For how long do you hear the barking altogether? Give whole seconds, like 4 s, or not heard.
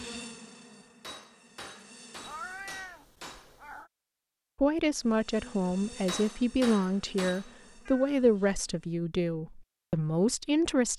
not heard.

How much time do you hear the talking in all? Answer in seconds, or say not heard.
6 s.